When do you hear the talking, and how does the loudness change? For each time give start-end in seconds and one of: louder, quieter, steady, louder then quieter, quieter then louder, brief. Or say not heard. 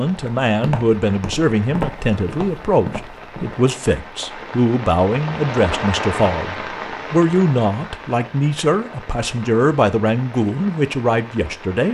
0.0-11.8 steady.